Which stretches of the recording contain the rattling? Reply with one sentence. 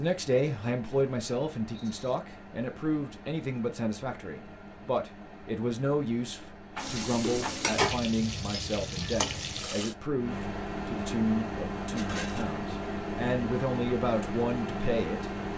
You can hear the rattling from 1.7 to 2.1 s, from 6.8 to 7.5 s and from 11.9 to 12.6 s.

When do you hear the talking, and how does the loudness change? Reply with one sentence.
The talking can be heard from 0.0 to 15.2 s, at a steady volume.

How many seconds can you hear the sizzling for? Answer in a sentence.
The sizzling can be heard for 3 seconds in total.